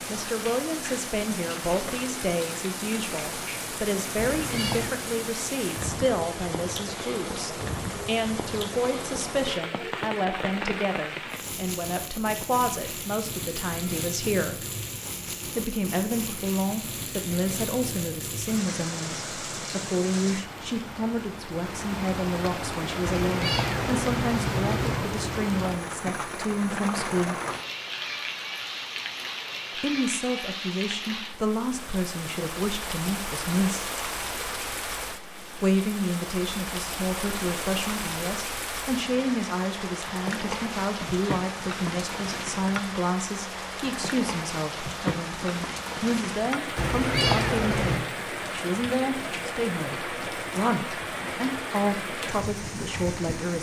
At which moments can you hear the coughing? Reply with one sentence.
The coughing can't be heard in this clip.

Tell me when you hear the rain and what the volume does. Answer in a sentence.
The rain can be heard from 0.0 to 53.5 s, at a steady volume.